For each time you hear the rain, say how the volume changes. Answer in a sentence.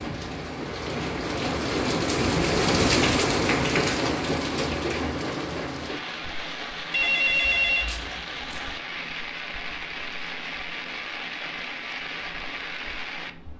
You can hear the rain from 0.0 to 13.5 s, getting quieter.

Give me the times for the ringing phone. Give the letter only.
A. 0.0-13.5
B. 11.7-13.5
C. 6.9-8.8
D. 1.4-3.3
C.